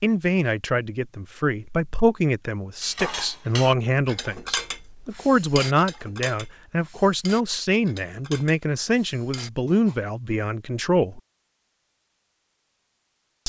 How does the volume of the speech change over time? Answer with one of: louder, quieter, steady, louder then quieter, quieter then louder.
steady.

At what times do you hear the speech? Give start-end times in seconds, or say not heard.
0.0-11.2.